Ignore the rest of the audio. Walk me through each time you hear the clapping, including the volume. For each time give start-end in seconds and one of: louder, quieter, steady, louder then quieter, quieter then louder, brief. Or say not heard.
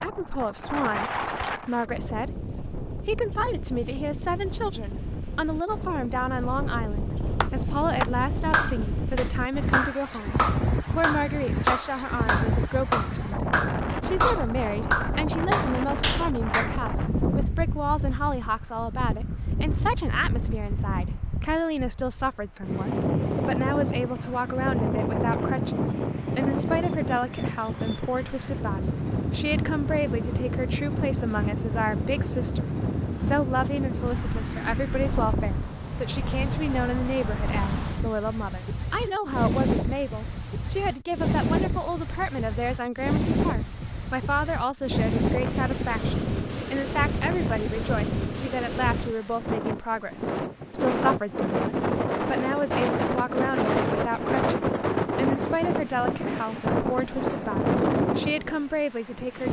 7.4-16.8 steady.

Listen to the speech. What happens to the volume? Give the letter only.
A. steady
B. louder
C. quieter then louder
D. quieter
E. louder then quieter
A.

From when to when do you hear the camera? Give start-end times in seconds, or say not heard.
not heard.